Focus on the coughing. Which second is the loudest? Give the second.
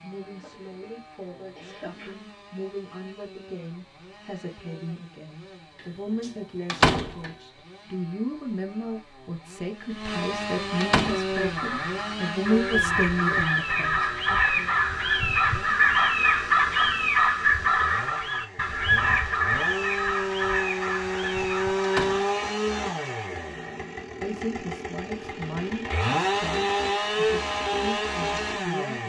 2 s.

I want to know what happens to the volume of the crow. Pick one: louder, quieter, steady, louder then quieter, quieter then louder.
louder then quieter.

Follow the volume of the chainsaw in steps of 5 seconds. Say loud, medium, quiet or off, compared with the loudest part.
quiet, quiet, medium, medium, loud, loud.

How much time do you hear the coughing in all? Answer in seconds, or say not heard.
2 s.